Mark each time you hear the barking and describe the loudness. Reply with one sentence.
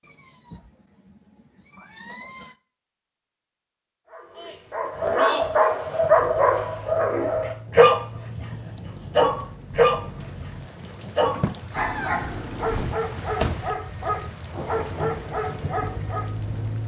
You can hear the barking from 4.1 to 16.3 s, getting quieter.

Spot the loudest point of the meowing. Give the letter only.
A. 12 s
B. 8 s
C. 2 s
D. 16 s
A.